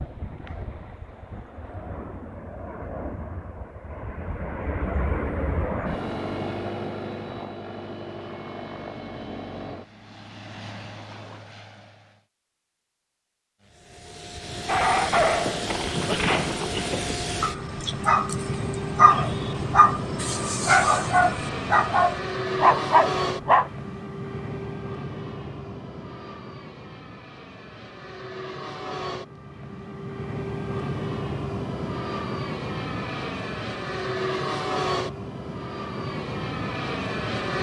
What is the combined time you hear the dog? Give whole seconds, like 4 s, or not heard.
9 s.